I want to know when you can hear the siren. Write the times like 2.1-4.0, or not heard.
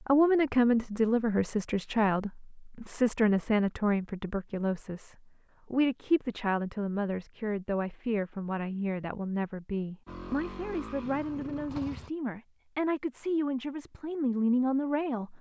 not heard.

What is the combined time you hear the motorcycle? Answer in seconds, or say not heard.
2 s.